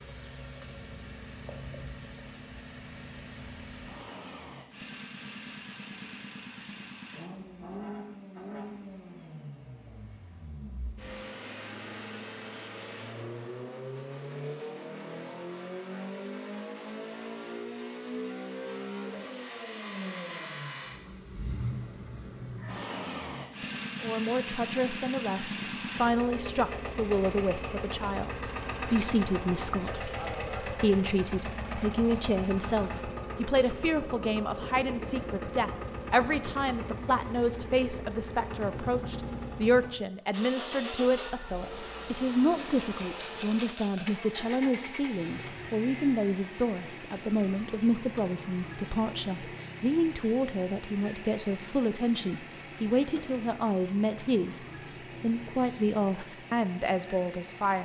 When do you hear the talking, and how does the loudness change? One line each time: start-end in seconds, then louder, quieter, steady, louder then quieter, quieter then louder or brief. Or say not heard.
24.0-54.6 steady
55.2-57.8 brief.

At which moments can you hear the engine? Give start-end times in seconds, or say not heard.
0.0-57.8.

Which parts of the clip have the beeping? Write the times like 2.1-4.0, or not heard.
not heard.